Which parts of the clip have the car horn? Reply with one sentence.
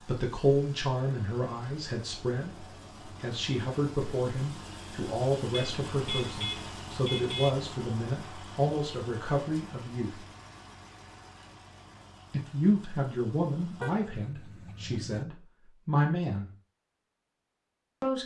The car horn can be heard from 5.5 to 7.5 s and from 13.8 to 15.2 s.